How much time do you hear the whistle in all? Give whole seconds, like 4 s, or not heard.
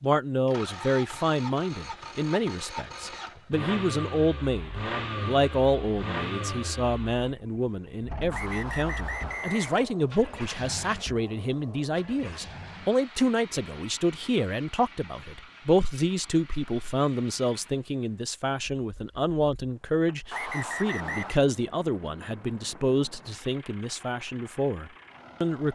3 s.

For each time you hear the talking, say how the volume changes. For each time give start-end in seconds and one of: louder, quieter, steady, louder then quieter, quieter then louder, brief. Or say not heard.
0.0-25.7 steady.